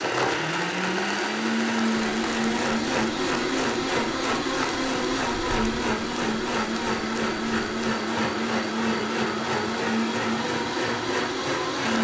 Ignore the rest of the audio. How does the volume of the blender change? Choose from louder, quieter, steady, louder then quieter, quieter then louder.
steady.